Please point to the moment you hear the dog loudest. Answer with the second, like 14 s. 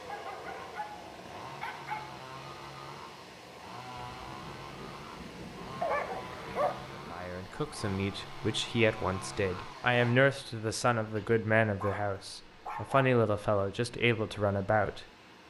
6 s.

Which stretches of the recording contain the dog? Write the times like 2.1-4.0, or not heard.
0.1-2.1, 5.8-6.8, 11.1-13.1.